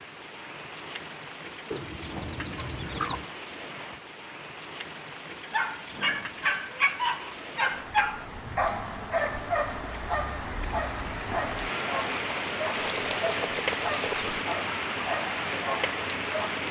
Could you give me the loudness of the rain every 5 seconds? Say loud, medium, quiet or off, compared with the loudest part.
medium, medium, loud, loud.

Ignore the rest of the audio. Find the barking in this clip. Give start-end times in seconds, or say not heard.
5.5-16.6.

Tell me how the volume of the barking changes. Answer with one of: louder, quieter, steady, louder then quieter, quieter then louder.
quieter.